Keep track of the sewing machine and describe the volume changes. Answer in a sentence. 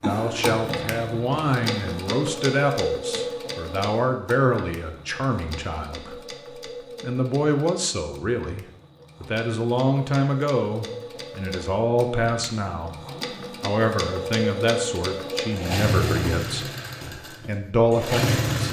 The volume of the sewing machine goes down, then up.